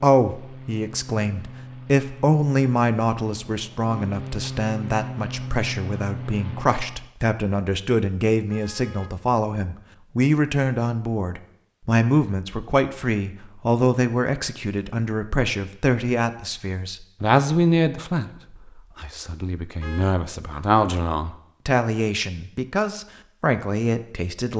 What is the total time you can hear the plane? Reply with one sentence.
The plane can be heard for 7 seconds in total.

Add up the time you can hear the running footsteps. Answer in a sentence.
You can't hear the running footsteps here.